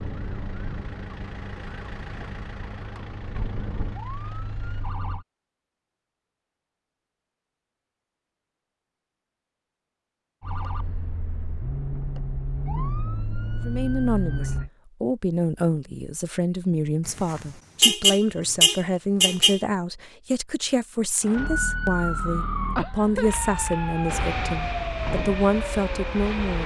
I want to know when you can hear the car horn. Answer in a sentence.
You can hear the car horn from 17.1 to 19.6 s.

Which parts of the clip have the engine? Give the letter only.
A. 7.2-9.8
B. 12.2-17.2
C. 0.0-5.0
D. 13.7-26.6
C.